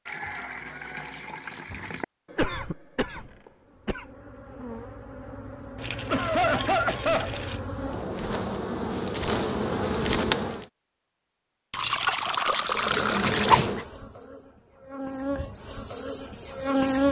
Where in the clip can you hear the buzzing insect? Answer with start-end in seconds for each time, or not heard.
3.6-10.7, 12.7-17.0.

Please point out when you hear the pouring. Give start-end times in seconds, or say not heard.
0.1-2.0, 5.8-7.6, 11.7-13.7.